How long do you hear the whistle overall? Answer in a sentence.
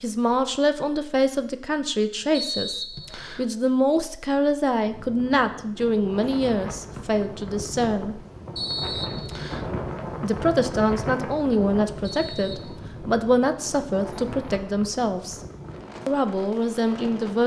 You can hear the whistle for 3 seconds altogether.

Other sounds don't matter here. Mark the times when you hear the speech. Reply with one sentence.
You can hear the speech from 0.0 to 8.2 s, from 10.2 to 15.4 s and from 16.1 to 17.4 s.